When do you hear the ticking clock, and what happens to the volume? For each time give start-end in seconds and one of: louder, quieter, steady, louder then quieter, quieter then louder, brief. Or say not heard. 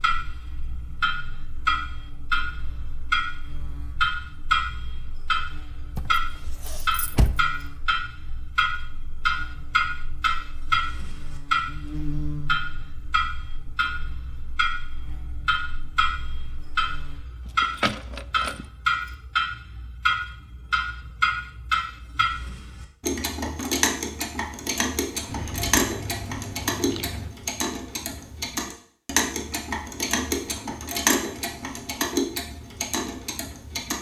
0.0-33.9 steady.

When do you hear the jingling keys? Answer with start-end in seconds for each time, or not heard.
6.0-7.4, 17.4-18.6, 25.2-27.3.